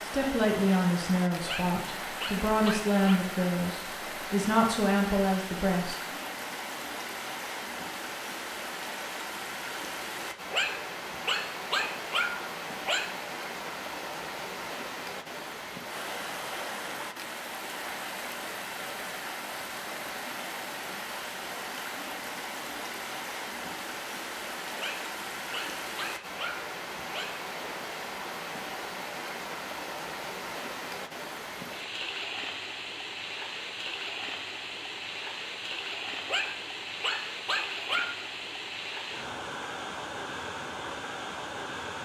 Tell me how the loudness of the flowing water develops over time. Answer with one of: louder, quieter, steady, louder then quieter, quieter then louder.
steady.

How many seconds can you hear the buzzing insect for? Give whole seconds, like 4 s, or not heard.
not heard.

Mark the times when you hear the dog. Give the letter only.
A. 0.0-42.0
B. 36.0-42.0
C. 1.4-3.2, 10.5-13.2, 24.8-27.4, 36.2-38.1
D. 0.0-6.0
C.